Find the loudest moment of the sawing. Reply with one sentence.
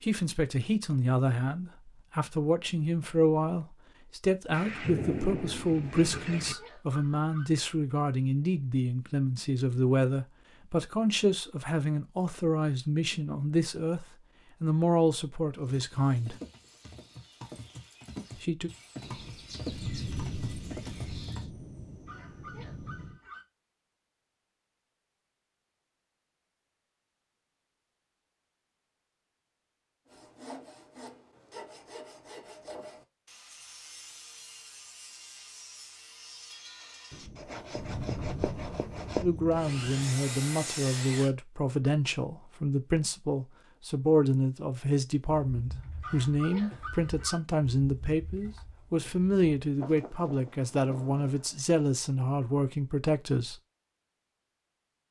The volume of the sawing peaks at 39 seconds.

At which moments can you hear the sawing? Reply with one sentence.
You can hear the sawing from 30.1 to 41.3 s.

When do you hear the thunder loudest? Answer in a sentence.
The loudest moment of the thunder is at 5 seconds.